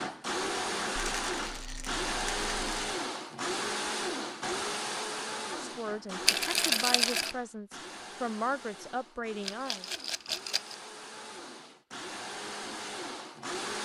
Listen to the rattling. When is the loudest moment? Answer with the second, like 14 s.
7 s.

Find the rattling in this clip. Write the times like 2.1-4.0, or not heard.
0.9-3.0, 6.2-7.3, 9.4-10.8.